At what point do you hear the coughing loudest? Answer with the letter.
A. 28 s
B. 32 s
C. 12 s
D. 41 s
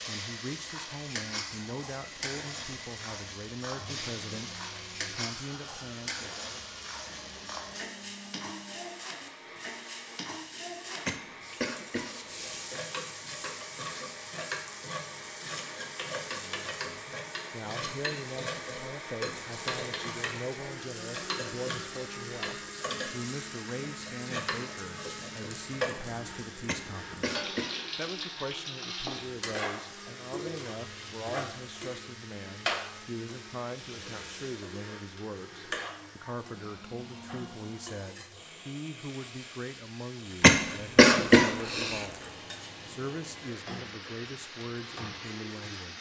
D.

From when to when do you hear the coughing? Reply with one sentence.
The coughing can be heard from 11.1 to 12.7 s, from 26.6 to 28.3 s and from 40.4 to 42.0 s.